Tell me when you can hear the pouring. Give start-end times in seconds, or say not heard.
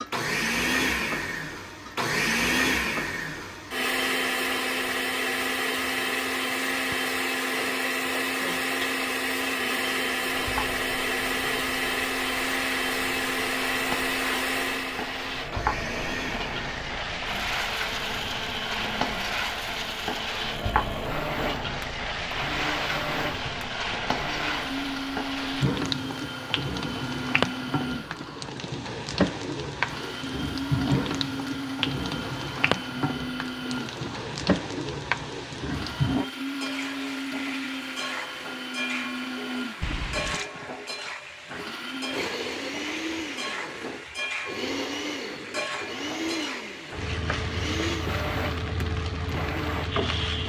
39.8-40.5.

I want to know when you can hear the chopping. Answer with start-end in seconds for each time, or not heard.
not heard.